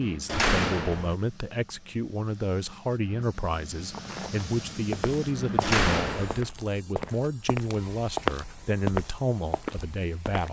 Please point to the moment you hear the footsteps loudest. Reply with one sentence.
The loudest moment of the footsteps is at 8 seconds.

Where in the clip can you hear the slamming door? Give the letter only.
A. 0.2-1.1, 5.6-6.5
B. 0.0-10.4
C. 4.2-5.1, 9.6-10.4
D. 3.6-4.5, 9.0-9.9
A.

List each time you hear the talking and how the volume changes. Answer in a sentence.
You can hear the talking from 0.0 to 10.4 s, at a steady volume.